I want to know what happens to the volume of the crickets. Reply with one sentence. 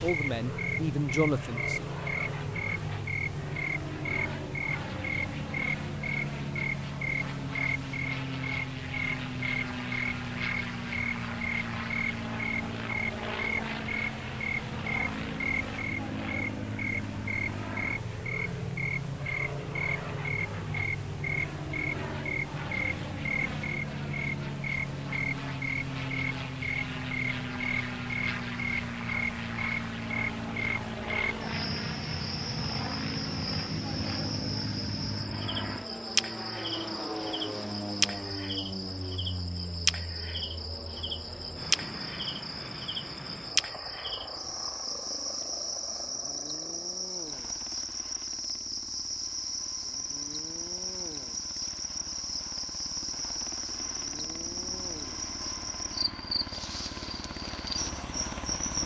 The loudness of the crickets stays about the same.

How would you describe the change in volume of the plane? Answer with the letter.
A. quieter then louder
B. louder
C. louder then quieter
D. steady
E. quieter
E.